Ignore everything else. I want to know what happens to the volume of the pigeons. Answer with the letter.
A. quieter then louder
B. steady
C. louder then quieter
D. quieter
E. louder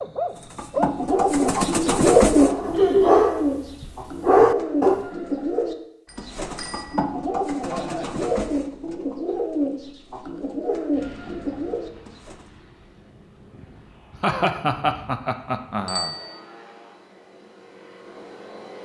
D.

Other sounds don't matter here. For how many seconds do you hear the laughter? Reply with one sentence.
You can hear the laughter for 3 seconds altogether.